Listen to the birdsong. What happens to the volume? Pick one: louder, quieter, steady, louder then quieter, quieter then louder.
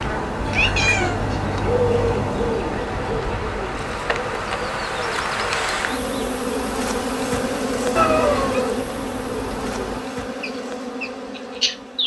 quieter.